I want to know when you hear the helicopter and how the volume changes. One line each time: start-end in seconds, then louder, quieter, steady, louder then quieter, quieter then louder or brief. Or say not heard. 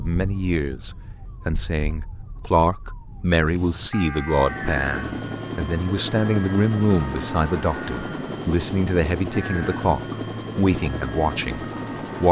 4.3-12.2 steady.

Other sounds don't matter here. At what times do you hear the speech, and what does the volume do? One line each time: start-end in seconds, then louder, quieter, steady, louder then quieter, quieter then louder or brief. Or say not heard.
0.0-12.2 steady.